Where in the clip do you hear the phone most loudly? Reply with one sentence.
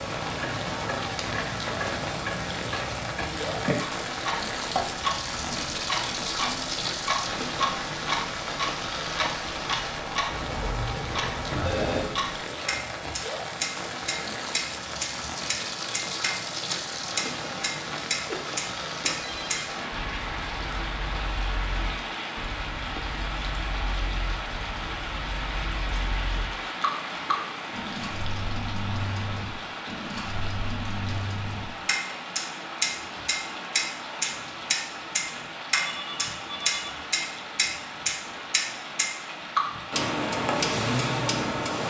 The volume of the phone peaks at 12 seconds.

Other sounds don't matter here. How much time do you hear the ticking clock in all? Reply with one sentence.
You can hear the ticking clock for 42 seconds altogether.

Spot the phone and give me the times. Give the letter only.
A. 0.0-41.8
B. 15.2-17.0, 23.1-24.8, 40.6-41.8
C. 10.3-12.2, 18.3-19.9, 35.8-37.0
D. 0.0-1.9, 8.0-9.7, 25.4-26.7
C.